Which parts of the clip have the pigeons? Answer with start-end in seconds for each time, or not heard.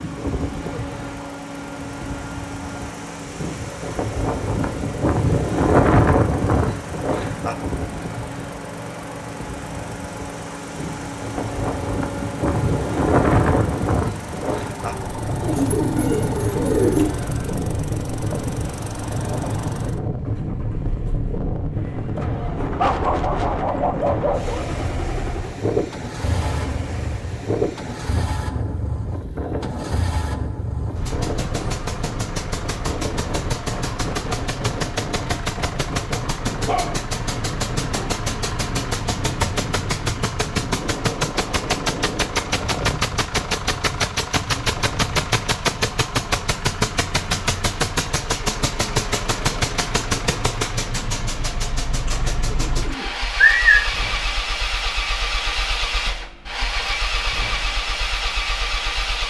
15.4-17.1, 52.0-53.8.